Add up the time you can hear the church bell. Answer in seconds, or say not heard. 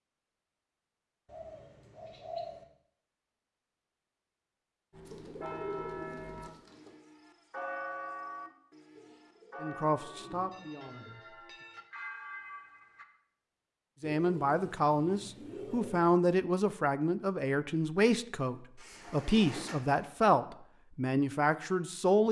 8 s.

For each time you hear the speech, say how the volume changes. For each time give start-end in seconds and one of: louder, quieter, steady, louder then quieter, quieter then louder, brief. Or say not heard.
9.6-11.2 brief
14.0-22.2 steady.